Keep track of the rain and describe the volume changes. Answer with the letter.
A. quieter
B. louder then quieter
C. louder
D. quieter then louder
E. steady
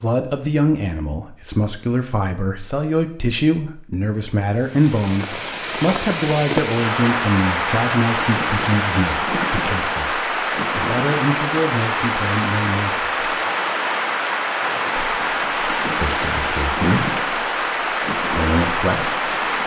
E.